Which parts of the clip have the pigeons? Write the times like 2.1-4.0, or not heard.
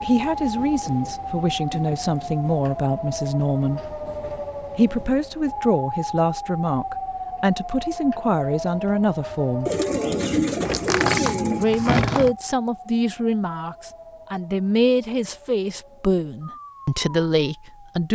9.7-11.7.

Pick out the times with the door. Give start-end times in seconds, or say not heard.
10.7-12.3.